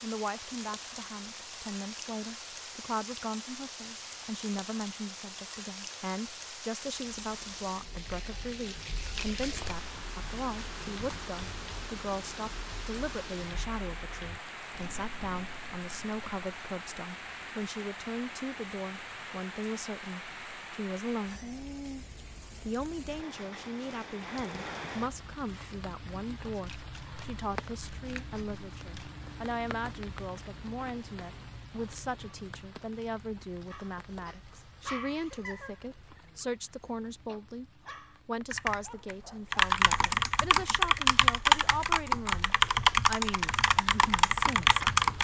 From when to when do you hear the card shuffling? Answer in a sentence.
You can hear the card shuffling from 9.0 to 9.9 s and from 26.5 to 29.1 s.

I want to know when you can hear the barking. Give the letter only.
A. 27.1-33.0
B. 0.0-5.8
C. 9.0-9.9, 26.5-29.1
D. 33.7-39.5
D.